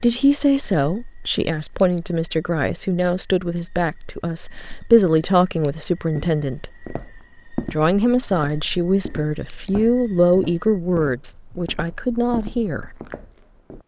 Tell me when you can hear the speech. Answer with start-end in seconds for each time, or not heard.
0.0-6.8, 7.6-12.9.